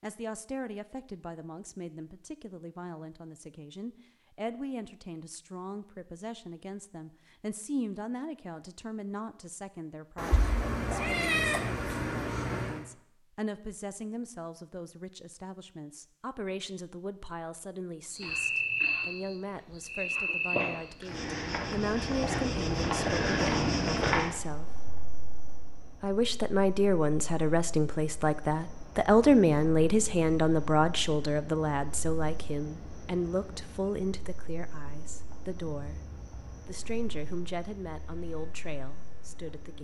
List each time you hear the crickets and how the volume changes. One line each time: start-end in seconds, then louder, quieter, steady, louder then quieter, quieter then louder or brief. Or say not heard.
18.1-39.7 quieter.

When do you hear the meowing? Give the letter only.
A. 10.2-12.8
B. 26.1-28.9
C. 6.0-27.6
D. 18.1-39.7
A.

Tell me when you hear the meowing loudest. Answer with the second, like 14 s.
11 s.